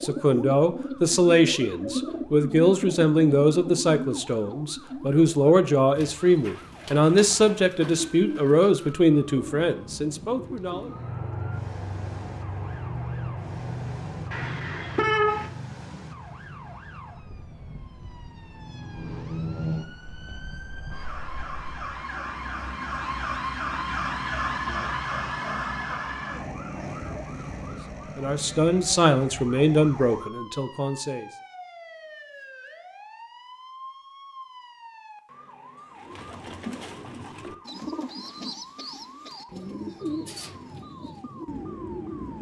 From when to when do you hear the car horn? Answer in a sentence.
You can hear the car horn from 14.3 to 15.5 s.